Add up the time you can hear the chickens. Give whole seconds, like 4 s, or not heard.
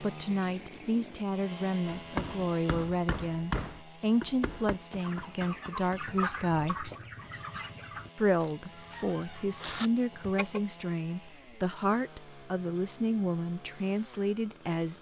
6 s.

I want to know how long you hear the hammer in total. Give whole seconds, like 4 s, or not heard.
4 s.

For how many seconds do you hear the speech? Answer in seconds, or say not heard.
14 s.